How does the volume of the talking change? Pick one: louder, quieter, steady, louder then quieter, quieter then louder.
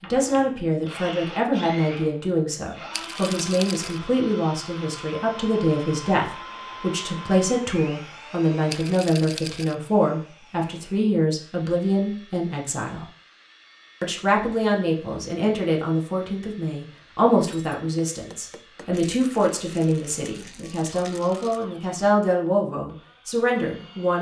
steady.